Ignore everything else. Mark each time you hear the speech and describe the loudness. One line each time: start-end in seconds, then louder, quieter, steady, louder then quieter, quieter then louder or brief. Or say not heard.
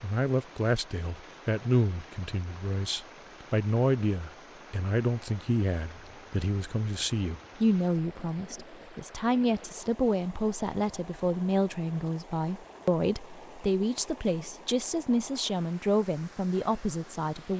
0.0-17.5 steady.